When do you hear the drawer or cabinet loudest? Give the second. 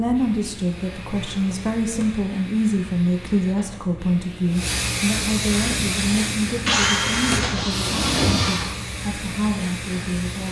8 s.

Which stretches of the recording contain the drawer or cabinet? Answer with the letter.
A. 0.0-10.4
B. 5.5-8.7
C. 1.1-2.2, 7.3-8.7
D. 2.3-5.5
C.